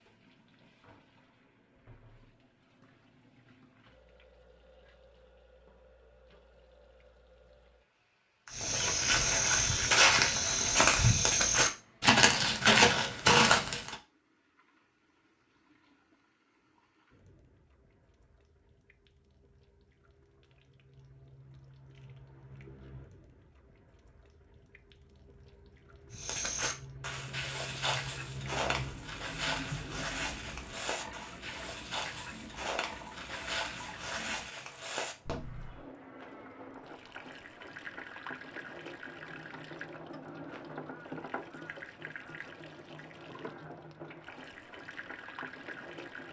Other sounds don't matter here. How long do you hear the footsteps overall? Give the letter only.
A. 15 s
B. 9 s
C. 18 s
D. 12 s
A.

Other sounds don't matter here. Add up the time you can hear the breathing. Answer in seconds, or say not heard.
not heard.